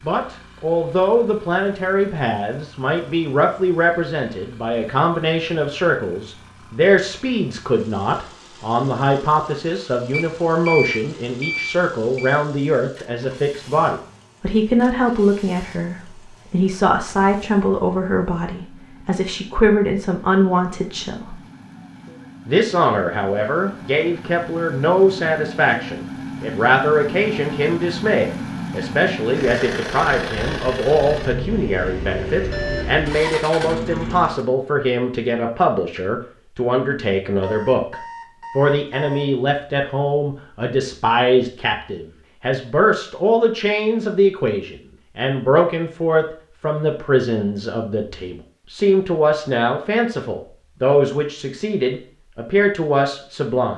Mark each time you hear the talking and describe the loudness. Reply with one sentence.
You can hear the talking from 0.1 to 21.4 s, at a steady volume; from 22.4 to 38.0 s, at a steady volume; and from 38.5 to 53.7 s, at a steady volume.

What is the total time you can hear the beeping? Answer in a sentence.
The beeping can be heard for 5 seconds in total.